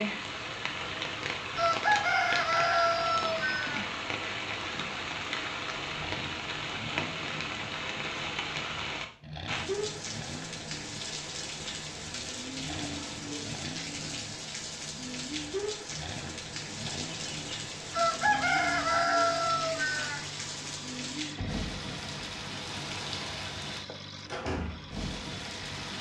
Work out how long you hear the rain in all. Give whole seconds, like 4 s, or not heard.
26 s.